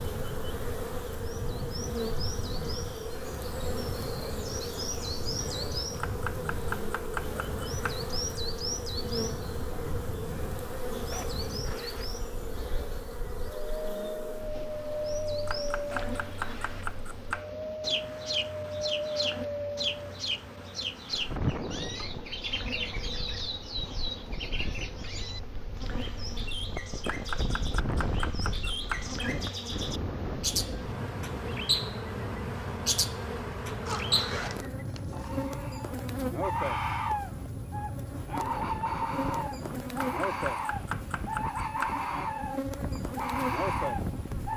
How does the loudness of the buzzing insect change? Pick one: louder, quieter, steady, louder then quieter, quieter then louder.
quieter then louder.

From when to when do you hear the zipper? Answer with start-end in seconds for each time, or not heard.
11.1-12.2, 15.9-17.1, 33.9-35.5.